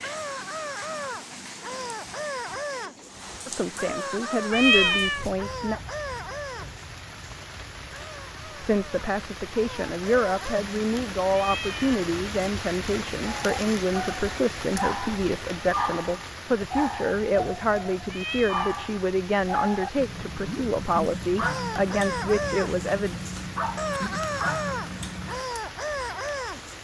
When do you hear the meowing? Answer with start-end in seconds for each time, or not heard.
4.5-5.2, 11.3-12.0, 18.1-18.9.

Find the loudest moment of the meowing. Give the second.
5 s.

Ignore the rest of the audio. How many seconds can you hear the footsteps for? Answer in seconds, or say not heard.
not heard.